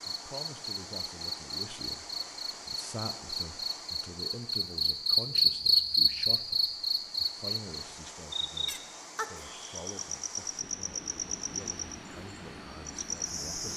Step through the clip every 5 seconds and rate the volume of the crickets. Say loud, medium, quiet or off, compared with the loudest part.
medium, loud, medium.